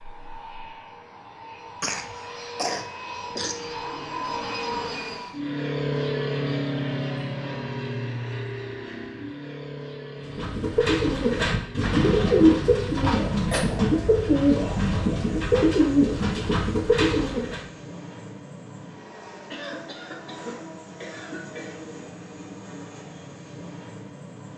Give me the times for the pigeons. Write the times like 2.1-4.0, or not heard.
10.2-17.6.